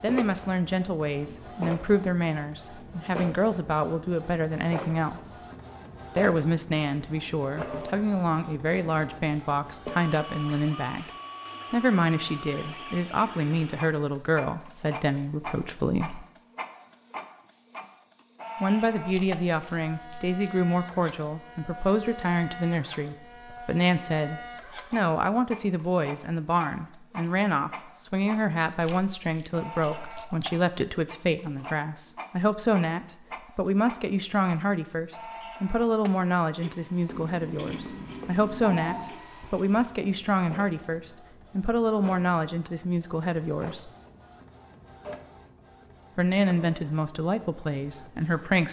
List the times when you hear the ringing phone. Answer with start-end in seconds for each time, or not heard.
37.0-39.2.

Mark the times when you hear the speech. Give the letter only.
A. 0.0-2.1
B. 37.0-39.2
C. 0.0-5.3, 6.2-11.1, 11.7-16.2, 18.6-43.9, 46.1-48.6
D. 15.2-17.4
C.